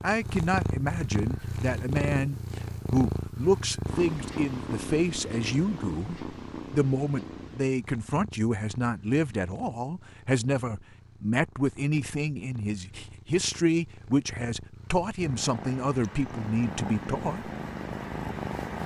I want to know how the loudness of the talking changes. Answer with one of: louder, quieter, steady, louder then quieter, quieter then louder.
steady.